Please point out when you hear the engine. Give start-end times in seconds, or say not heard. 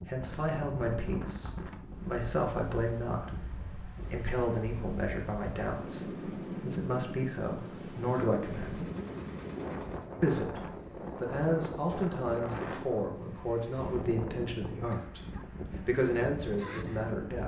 8.4-10.2.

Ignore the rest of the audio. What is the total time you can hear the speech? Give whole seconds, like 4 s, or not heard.
15 s.